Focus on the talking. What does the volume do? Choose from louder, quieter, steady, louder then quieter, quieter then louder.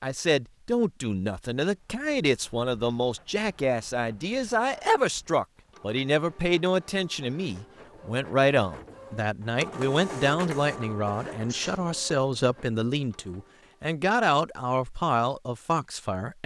steady.